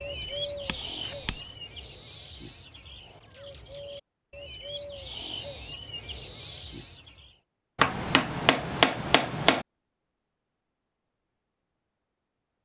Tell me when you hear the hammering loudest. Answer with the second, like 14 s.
9 s.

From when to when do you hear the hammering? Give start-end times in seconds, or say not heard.
0.2-1.4, 7.8-9.7.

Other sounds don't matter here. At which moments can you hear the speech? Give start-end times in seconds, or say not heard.
not heard.